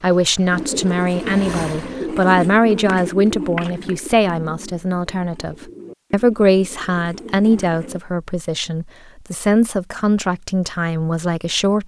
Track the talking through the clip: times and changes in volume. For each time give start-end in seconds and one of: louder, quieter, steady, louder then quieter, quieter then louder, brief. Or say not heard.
0.0-11.8 steady.